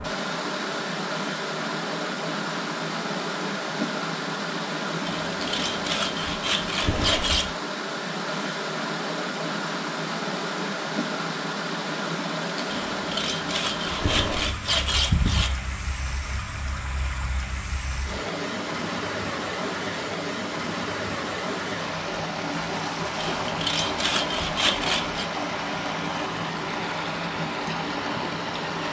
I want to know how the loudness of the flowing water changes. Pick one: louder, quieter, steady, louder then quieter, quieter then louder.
steady.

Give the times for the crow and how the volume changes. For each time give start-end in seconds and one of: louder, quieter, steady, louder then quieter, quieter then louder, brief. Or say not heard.
not heard.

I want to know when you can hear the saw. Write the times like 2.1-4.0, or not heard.
5.0-7.5, 12.7-15.6, 23.1-25.2.